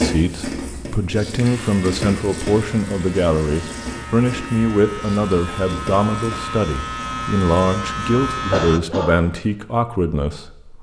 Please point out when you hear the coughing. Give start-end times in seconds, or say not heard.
8.5-9.1.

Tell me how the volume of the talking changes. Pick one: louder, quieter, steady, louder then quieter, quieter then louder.
steady.